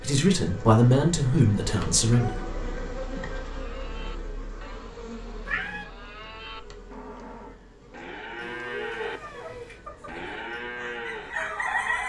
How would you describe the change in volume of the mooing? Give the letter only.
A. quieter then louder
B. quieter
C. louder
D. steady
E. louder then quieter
C.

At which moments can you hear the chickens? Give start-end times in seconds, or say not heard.
9.0-12.0.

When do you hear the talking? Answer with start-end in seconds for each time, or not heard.
0.0-2.3.